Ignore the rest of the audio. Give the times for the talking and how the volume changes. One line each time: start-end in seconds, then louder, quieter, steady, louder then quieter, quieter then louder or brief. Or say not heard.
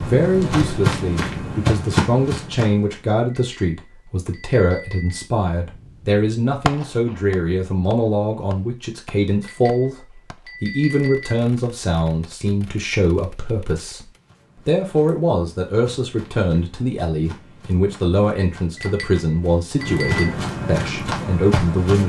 0.1-22.0 steady.